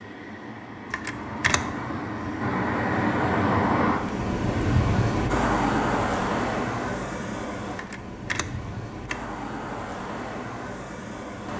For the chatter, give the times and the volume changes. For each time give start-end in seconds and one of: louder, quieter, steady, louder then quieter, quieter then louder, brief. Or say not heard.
not heard.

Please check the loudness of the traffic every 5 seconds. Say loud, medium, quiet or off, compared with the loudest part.
loud, loud, medium.